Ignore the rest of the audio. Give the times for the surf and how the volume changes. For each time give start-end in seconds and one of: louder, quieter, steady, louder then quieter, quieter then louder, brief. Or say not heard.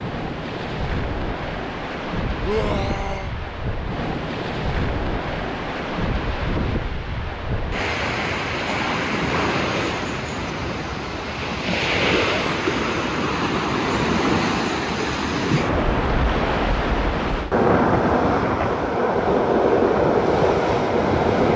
0.0-21.5 louder.